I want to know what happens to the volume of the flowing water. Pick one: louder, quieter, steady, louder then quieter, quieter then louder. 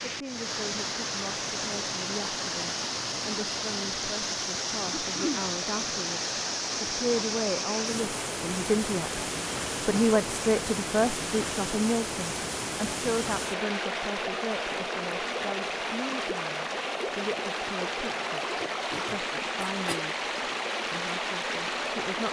steady.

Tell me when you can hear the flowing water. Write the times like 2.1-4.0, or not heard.
0.0-22.2.